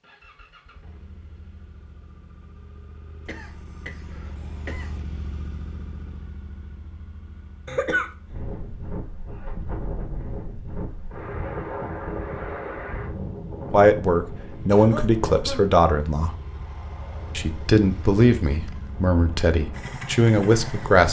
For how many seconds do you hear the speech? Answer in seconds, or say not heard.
6 s.